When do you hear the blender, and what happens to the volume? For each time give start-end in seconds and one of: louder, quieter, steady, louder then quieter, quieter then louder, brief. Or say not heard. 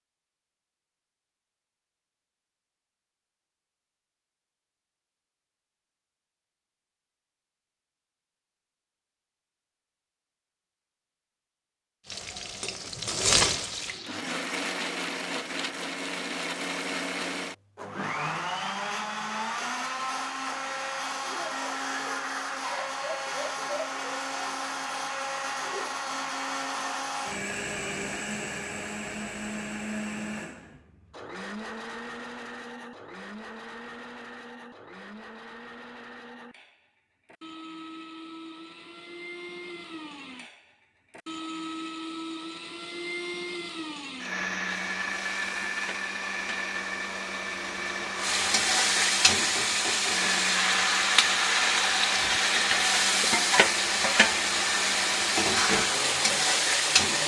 14.1-57.2 quieter then louder.